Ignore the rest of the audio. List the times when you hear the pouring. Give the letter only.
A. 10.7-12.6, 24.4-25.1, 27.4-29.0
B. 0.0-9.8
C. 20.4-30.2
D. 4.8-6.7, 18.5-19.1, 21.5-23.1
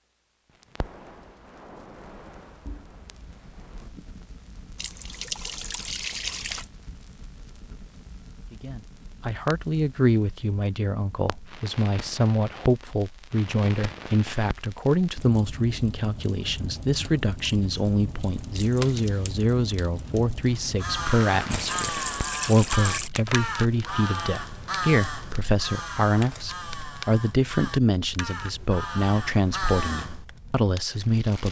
D.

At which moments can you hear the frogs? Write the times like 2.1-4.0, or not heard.
not heard.